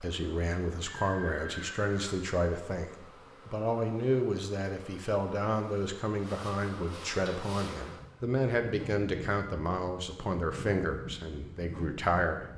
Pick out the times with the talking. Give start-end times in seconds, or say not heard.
0.0-12.4.